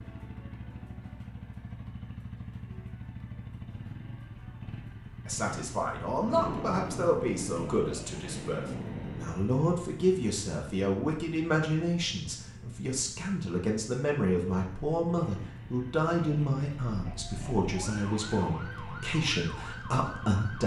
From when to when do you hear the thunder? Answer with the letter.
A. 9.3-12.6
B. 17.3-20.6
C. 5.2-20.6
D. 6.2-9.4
D.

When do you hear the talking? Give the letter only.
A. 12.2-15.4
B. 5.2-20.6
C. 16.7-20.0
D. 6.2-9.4
B.